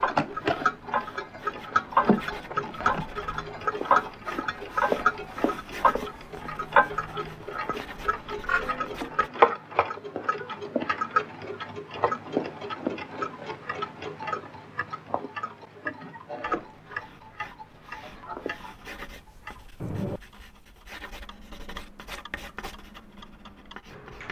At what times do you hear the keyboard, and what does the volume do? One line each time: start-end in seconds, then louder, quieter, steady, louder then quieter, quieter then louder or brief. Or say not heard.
not heard.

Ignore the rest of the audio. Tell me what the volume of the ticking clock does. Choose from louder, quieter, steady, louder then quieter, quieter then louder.
quieter.